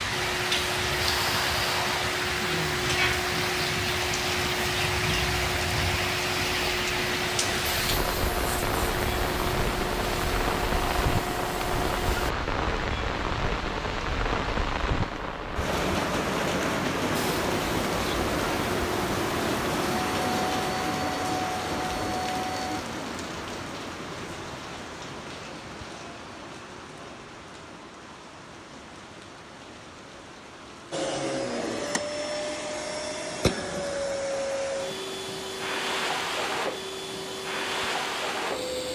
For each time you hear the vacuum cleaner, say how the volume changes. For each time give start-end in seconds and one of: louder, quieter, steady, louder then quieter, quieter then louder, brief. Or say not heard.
0.0-12.3 steady
17.1-22.8 steady
30.9-38.9 steady.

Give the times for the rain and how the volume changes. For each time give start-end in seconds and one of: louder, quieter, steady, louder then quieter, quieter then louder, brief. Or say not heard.
0.0-38.9 quieter.